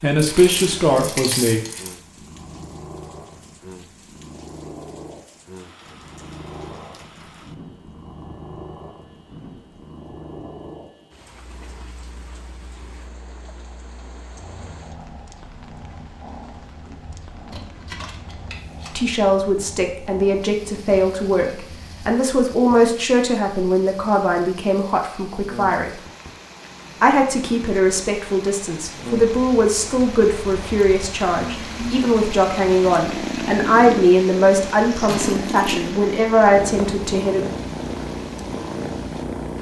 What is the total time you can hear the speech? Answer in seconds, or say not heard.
19 s.